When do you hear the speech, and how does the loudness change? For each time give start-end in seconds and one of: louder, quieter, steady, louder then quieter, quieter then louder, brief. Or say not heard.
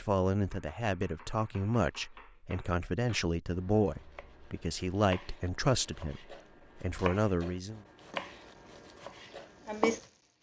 0.0-7.8 steady.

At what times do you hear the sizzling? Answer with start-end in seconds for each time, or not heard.
8.1-10.3.